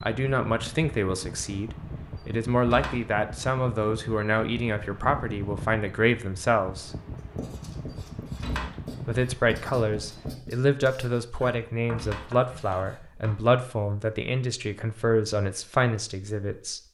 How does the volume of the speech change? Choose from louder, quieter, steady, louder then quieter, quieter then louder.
steady.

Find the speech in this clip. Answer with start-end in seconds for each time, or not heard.
0.0-7.0, 9.1-16.8.